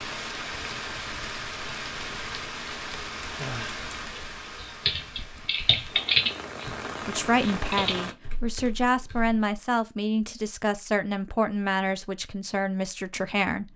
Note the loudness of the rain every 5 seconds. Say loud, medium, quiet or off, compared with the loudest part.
loud, loud, off.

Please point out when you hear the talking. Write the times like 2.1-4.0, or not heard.
7.0-13.7.